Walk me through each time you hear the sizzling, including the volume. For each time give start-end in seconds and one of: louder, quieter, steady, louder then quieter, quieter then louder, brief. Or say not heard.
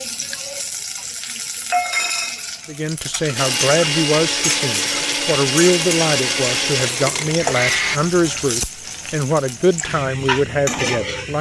0.0-11.3 steady.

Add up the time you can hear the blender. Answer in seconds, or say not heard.
5 s.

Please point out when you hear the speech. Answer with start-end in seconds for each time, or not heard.
2.6-11.3.